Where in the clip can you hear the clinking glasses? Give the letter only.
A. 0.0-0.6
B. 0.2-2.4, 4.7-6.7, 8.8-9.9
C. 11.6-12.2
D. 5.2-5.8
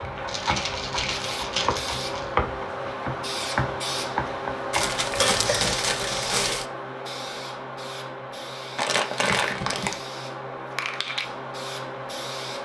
D.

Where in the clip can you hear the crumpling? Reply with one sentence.
The crumpling can be heard from 0.2 to 2.4 s, from 4.7 to 6.7 s and from 8.8 to 9.9 s.